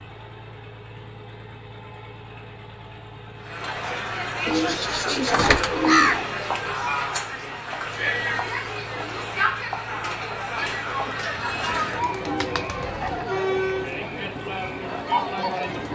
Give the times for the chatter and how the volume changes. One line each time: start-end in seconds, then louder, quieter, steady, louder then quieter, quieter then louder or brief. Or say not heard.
3.4-15.8 steady.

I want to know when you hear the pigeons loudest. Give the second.
6 s.